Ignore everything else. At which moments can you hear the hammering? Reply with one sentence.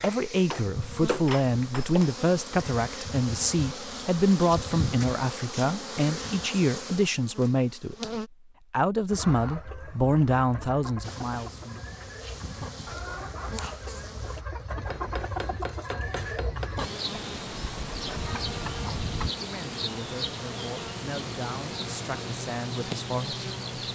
The hammering can be heard from 0.0 to 2.2 s and from 14.8 to 16.8 s.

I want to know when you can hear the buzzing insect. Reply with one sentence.
The buzzing insect can be heard from 0.0 to 8.3 s, from 11.0 to 14.4 s and from 16.8 to 23.9 s.